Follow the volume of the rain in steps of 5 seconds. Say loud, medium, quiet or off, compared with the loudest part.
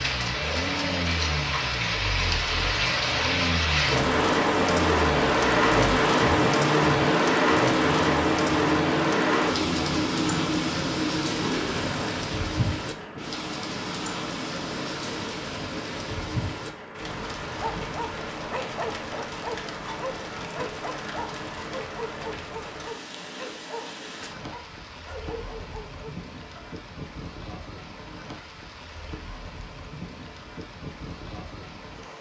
loud, loud, medium, quiet, quiet, quiet, quiet.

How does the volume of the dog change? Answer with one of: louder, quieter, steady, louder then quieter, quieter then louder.
quieter.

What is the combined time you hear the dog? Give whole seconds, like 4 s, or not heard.
9 s.